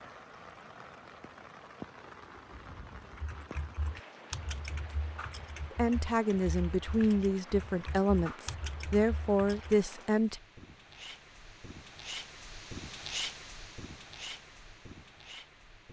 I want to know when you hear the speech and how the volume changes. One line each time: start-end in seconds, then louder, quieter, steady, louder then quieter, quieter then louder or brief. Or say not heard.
5.7-10.4 steady.